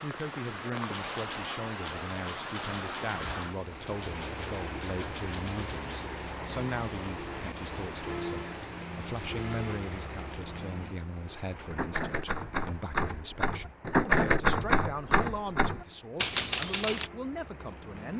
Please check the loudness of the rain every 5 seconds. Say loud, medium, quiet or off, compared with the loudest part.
loud, loud, medium, medium.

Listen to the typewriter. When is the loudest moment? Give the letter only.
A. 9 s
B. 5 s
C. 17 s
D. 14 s
D.